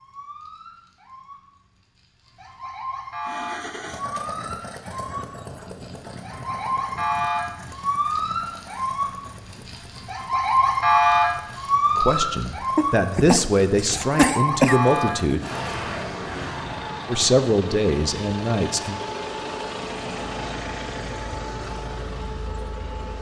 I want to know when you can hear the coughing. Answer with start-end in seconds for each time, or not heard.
12.8-14.8.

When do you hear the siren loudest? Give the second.
11 s.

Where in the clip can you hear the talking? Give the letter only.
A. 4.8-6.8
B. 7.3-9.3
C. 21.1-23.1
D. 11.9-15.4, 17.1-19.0
D.